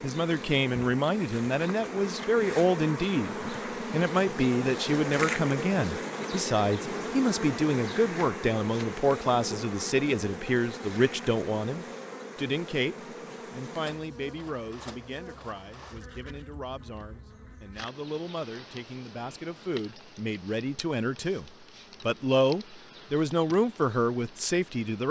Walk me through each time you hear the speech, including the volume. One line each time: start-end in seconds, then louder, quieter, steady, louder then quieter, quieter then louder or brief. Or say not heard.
0.0-25.0 quieter then louder.